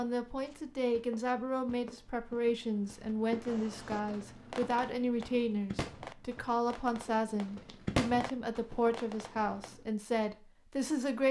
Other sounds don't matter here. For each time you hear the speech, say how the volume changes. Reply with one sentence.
The speech can be heard from 0.0 to 11.2 s, at a steady volume.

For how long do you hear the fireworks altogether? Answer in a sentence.
You can hear the fireworks for 6 seconds altogether.